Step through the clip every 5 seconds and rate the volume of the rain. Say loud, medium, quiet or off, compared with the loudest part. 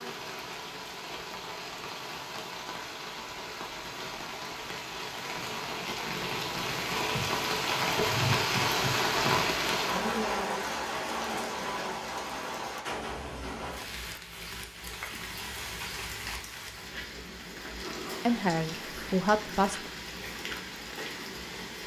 medium, loud, medium, medium, medium.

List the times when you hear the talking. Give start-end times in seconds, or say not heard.
18.2-19.8.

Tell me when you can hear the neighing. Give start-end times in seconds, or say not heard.
not heard.